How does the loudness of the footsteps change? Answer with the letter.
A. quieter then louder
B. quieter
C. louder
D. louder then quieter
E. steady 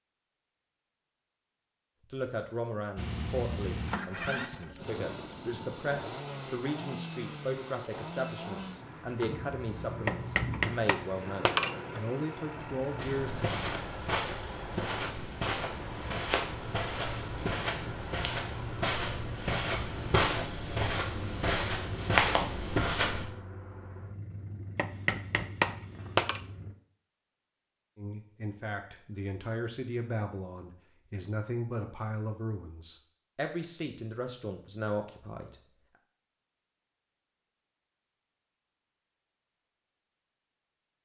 C.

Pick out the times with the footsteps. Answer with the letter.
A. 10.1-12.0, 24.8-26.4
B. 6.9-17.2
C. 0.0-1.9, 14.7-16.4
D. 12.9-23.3
D.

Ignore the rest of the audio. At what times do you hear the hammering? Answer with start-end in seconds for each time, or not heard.
10.1-12.0, 24.8-26.4.